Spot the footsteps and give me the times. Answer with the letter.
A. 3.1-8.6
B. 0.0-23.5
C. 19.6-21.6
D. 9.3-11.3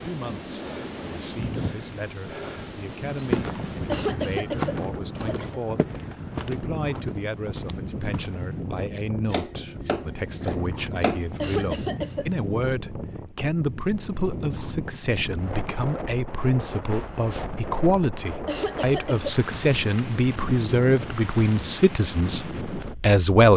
A.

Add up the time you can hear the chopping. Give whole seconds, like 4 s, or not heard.
2 s.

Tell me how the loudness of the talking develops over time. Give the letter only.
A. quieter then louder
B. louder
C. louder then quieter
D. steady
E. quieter
B.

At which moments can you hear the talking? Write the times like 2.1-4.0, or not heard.
0.0-23.5.